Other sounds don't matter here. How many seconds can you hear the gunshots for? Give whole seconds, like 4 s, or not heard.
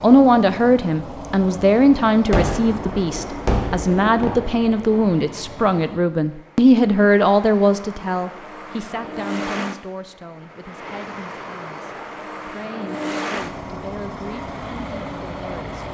3 s.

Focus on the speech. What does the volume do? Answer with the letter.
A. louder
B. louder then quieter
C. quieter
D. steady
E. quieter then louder
C.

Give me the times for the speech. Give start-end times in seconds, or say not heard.
0.0-15.8.